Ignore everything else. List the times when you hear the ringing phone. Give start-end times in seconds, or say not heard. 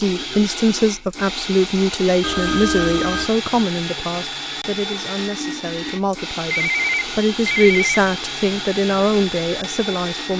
2.2-3.3, 6.5-8.0.